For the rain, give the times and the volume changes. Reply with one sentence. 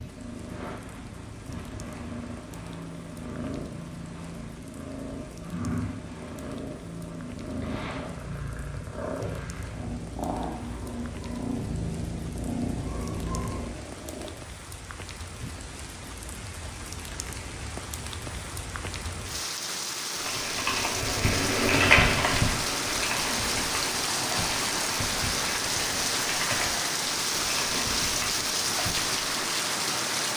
The rain can be heard from 0.0 to 30.3 s, getting louder.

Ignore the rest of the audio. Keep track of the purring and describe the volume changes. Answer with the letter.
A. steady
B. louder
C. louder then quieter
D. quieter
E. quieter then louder
B.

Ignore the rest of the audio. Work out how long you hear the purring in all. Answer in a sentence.
The purring can be heard for 14 seconds in total.